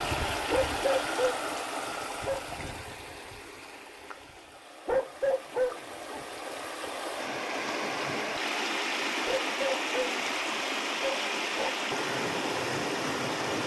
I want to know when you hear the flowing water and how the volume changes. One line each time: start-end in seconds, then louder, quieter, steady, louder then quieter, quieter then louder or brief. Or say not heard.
0.0-13.6 quieter then louder.